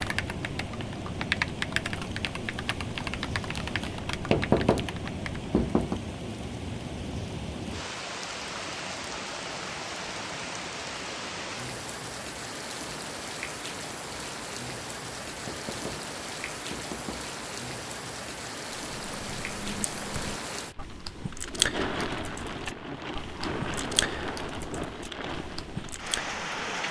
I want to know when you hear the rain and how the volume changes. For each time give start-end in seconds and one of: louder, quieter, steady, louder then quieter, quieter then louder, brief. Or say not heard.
0.0-26.8 steady.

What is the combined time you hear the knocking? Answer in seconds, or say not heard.
4 s.